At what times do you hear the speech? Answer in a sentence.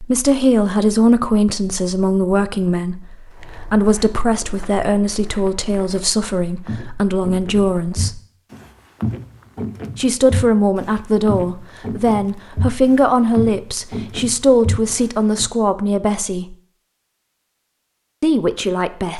You can hear the speech from 0.0 to 8.2 s, from 9.9 to 16.6 s and from 18.2 to 19.1 s.